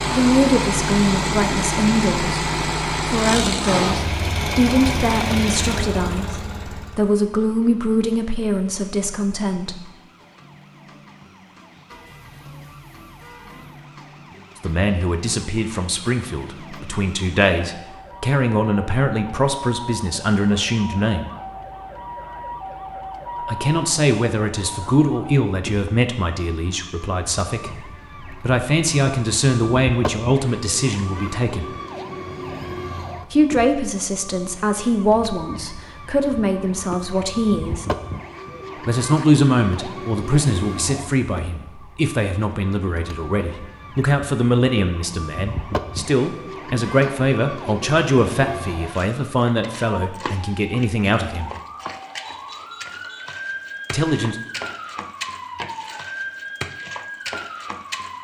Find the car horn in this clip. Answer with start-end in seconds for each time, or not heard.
11.9-13.8, 52.2-53.2.